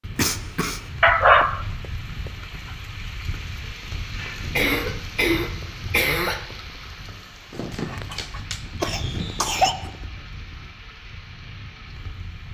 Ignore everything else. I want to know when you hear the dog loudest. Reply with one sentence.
The loudest moment of the dog is at 1 second.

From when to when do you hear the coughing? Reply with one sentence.
You can hear the coughing from 0.1 to 0.8 s, from 4.5 to 6.5 s and from 8.8 to 9.8 s.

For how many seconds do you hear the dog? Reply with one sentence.
You can hear the dog for 4 seconds altogether.